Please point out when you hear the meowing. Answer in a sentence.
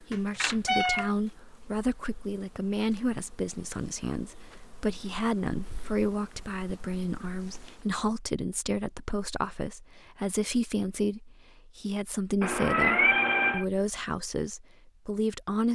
You can hear the meowing from 0.1 to 1.1 s and from 12.4 to 13.7 s.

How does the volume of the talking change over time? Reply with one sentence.
The volume of the talking stays about the same.